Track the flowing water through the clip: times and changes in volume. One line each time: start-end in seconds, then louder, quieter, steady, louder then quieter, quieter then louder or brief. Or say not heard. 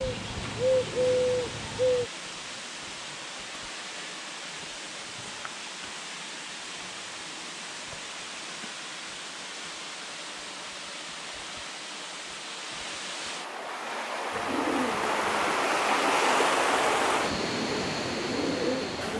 0.0-19.1 louder.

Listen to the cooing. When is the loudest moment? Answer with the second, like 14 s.
1 s.